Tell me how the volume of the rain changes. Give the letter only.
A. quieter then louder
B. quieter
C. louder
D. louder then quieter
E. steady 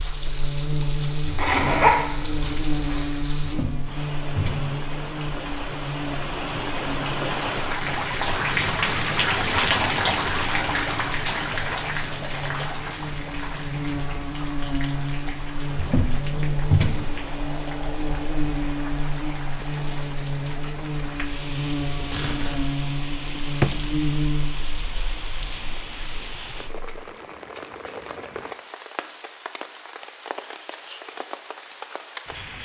D.